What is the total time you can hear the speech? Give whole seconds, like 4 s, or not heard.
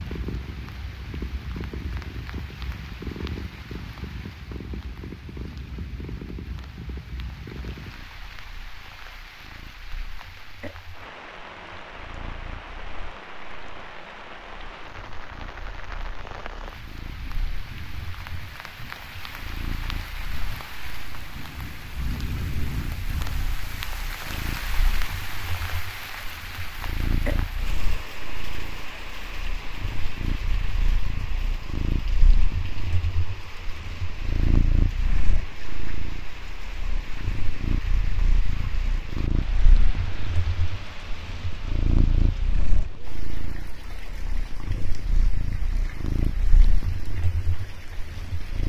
not heard.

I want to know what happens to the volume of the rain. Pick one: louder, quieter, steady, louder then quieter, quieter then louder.
louder then quieter.